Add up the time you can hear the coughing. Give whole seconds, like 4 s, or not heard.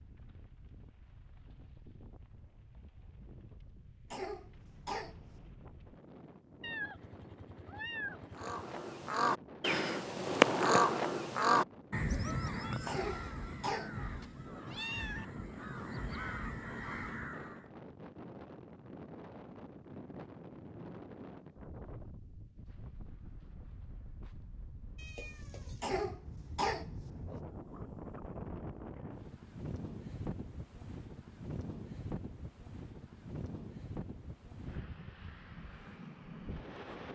4 s.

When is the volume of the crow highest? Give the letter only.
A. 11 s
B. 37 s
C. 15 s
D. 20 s
A.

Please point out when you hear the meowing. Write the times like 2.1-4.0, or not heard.
6.6-8.6, 14.0-15.2, 24.9-26.0.